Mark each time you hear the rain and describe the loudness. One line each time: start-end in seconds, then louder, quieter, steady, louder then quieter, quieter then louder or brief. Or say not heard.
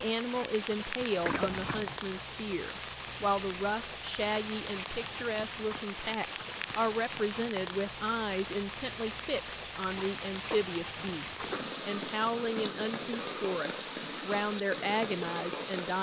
0.0-15.9 steady.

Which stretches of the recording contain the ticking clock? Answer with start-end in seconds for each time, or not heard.
not heard.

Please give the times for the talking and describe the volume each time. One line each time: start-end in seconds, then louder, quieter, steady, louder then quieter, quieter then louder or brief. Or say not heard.
0.0-15.9 steady.